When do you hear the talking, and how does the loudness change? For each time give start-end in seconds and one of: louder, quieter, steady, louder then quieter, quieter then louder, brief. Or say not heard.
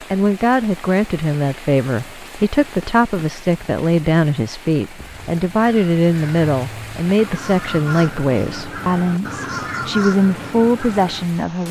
0.0-11.6 steady.